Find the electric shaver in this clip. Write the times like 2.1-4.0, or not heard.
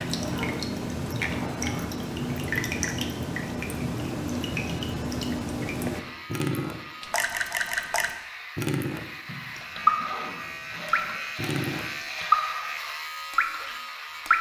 5.9-14.3.